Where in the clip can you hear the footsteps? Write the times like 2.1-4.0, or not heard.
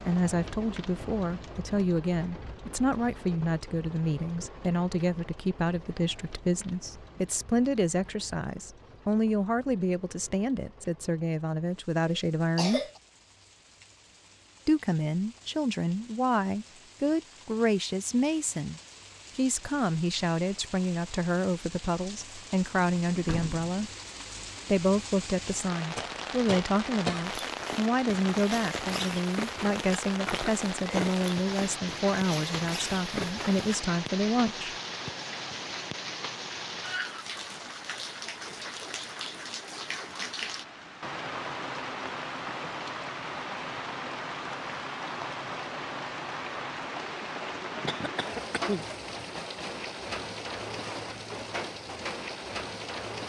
27.2-33.8.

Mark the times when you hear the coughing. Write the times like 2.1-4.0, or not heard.
12.1-13.0, 25.9-27.4, 47.8-49.2.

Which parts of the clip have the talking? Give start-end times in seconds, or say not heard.
0.1-12.8, 14.7-23.9, 24.6-34.8.